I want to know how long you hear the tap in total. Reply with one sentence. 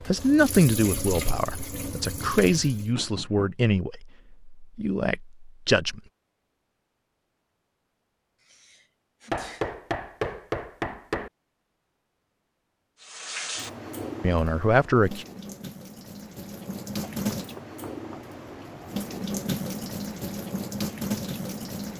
You can hear the tap for 12 seconds altogether.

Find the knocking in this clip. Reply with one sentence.
You can hear the knocking from 3.0 to 3.5 s, from 9.3 to 11.3 s and from 17.1 to 18.3 s.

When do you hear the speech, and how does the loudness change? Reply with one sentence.
The speech can be heard from 0.1 to 6.0 s, getting quieter; and briefly from 14.2 to 15.2 s.